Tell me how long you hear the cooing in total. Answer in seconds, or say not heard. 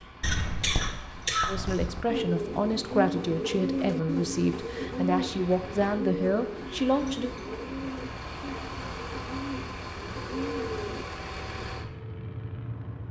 9 s.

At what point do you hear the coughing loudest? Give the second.
1 s.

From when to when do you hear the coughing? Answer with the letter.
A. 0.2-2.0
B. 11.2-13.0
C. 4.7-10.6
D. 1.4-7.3
A.